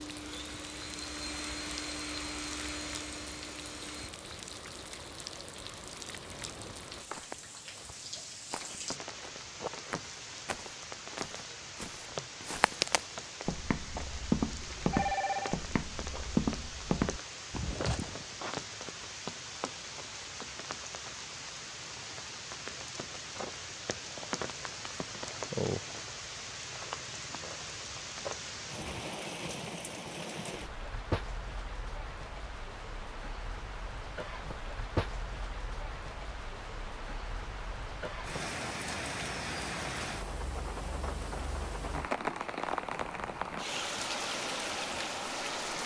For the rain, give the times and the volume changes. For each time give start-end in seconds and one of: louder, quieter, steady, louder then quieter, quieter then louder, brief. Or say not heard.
0.0-45.8 louder.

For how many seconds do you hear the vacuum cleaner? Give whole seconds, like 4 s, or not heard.
4 s.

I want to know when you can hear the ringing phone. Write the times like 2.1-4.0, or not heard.
14.6-15.6.